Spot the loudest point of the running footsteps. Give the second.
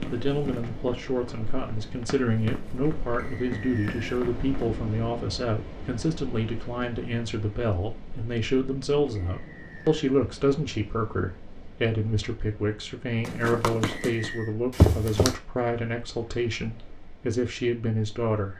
15 s.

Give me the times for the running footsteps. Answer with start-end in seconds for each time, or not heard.
0.0-4.7, 13.2-15.3.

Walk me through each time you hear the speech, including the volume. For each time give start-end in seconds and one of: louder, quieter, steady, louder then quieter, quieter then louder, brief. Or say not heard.
0.1-18.5 steady.